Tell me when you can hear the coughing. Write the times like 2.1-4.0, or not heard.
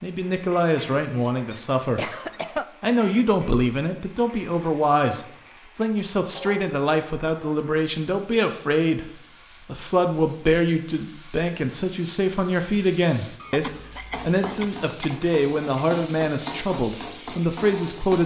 1.4-2.6, 13.4-15.1.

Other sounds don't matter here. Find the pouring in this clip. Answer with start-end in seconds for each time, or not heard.
not heard.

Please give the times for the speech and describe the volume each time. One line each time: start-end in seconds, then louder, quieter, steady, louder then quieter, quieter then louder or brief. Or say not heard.
0.0-18.2 steady.